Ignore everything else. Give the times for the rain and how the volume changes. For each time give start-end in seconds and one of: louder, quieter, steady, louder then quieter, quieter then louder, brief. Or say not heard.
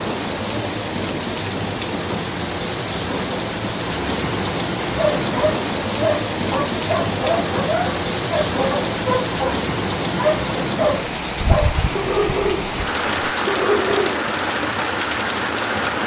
0.0-16.0 steady.